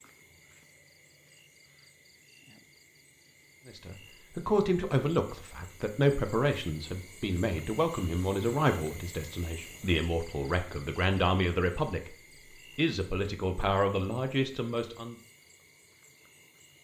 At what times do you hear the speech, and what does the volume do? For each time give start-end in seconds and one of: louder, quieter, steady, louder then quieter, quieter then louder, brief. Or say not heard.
3.6-12.2 steady
12.8-15.2 brief.